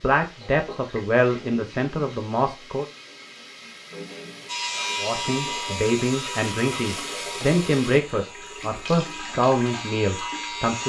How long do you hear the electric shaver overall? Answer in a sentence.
The electric shaver can be heard for 6 seconds in total.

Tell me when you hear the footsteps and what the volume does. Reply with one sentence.
The footsteps can't be heard in this clip.